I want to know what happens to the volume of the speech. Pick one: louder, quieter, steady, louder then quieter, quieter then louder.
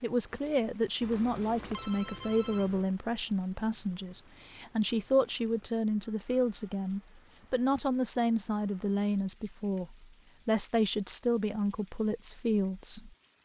steady.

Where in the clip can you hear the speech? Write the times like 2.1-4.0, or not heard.
0.0-13.4.